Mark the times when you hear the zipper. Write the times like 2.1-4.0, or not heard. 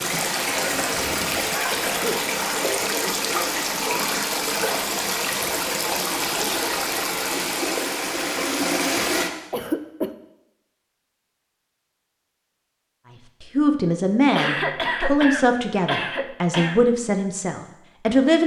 not heard.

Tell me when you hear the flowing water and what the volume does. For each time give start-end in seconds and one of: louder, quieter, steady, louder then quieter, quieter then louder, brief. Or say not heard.
0.0-9.3 steady.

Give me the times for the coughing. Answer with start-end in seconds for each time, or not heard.
0.5-2.2, 9.5-10.1, 14.3-16.9.